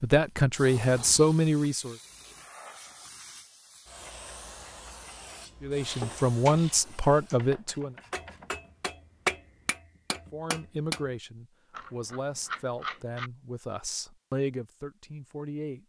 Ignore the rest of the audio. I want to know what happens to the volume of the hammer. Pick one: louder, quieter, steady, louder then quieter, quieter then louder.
louder then quieter.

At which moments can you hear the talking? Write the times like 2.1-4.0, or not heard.
0.0-1.9, 5.6-8.0, 10.3-15.8.